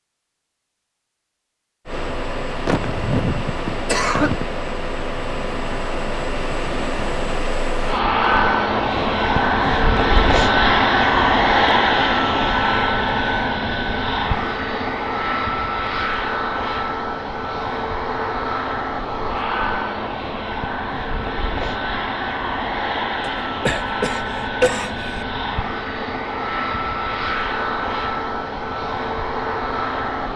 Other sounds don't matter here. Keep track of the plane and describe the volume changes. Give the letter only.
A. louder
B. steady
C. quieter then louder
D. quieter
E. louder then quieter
E.